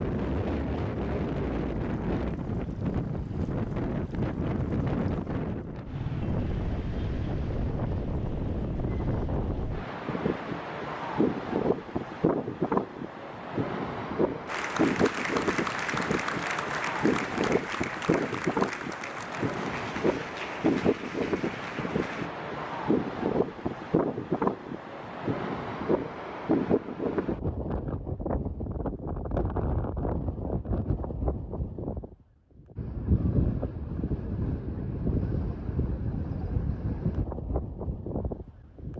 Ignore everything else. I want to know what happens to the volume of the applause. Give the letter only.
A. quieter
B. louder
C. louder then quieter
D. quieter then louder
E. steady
A.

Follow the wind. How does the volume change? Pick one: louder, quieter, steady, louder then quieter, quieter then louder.
steady.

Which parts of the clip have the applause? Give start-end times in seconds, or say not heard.
14.4-22.3.